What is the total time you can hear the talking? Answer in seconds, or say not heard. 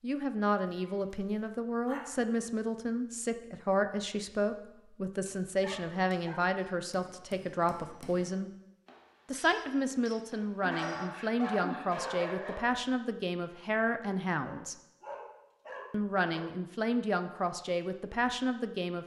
17 s.